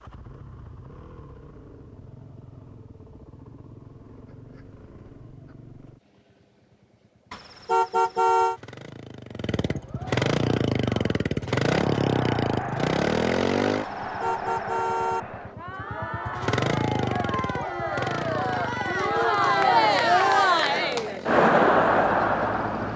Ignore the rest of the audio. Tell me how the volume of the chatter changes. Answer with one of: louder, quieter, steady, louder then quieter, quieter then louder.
louder.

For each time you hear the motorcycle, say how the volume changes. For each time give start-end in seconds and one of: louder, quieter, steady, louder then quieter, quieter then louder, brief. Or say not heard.
0.0-22.9 louder then quieter.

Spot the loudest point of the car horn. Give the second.
8 s.